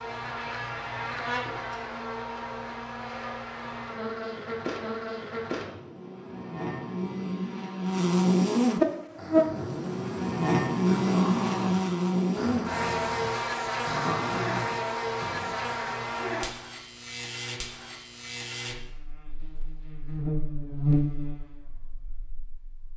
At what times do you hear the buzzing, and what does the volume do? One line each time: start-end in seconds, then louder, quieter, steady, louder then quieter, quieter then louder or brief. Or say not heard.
0.0-22.9 louder then quieter.